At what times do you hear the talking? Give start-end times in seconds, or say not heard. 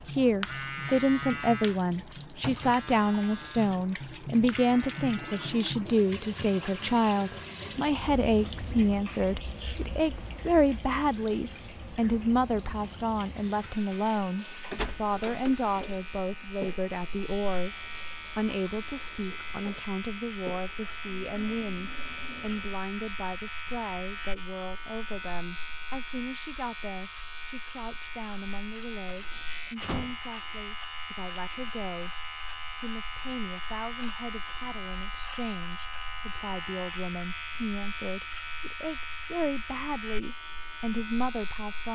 0.1-41.9.